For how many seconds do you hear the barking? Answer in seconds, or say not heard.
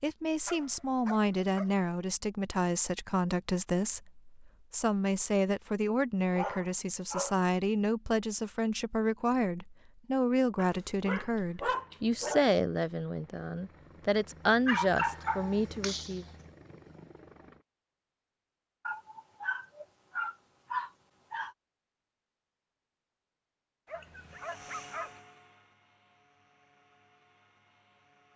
10 s.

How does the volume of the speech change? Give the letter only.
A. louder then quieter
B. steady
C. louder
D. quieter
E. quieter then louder
B.